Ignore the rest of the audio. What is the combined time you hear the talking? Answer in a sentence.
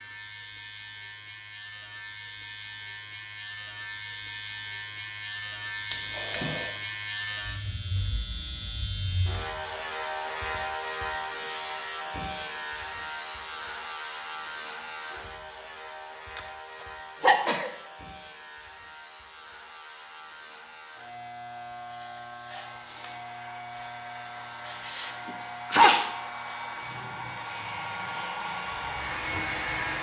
The talking can't be heard in this clip.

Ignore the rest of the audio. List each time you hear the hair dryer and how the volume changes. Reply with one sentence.
The hair dryer can be heard from 22.6 to 29.9 s, getting louder.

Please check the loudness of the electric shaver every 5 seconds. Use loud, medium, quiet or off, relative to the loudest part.
medium, loud, loud, medium, medium, medium.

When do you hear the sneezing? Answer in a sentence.
The sneezing can be heard from 5.9 to 6.7 s, from 17.2 to 17.7 s and from 24.9 to 26.1 s.